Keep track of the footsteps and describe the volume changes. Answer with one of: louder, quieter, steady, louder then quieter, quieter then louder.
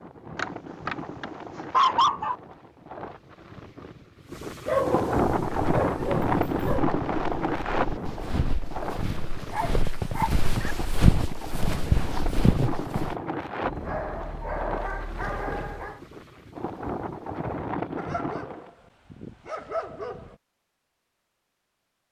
louder.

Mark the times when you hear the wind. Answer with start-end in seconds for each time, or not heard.
0.0-18.7.